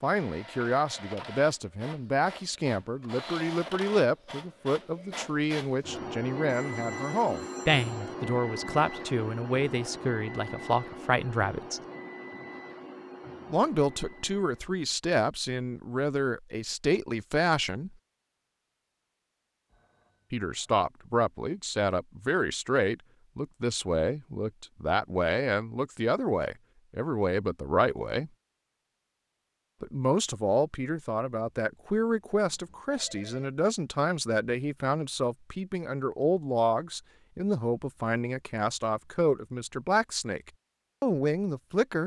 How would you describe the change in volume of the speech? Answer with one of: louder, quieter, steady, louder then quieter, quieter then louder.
steady.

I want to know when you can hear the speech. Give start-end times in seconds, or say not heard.
0.0-11.8, 13.5-17.9, 20.3-28.3, 29.8-42.0.